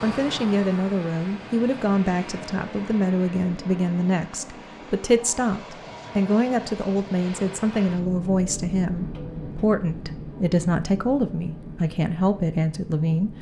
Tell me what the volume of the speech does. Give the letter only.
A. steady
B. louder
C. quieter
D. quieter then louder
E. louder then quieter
A.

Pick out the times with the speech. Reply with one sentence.
The speech can be heard from 0.0 to 13.3 s.